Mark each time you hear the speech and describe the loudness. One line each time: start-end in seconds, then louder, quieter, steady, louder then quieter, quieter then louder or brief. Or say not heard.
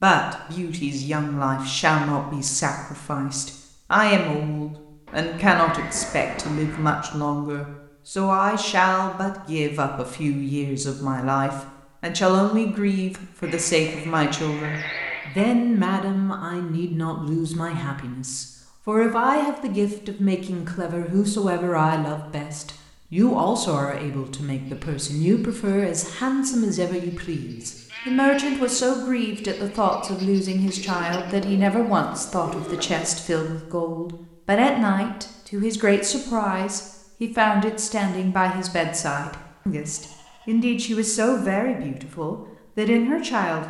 0.0-43.6 steady.